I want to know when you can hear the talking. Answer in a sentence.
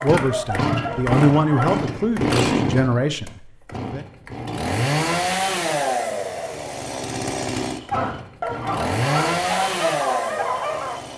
The talking can be heard from 0.0 to 4.0 s.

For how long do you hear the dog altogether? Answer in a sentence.
You can hear the dog for 5 seconds altogether.